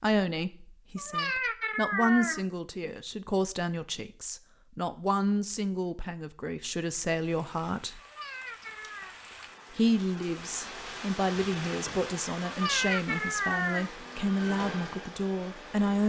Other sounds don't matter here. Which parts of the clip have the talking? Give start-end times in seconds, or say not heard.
0.0-8.0, 9.7-16.0.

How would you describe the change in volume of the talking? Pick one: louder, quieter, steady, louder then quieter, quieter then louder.
steady.